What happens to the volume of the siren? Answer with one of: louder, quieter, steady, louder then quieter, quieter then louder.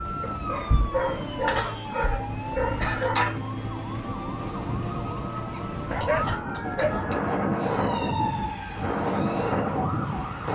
steady.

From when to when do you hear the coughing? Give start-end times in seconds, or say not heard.
1.4-2.1, 2.8-3.4, 5.3-7.2.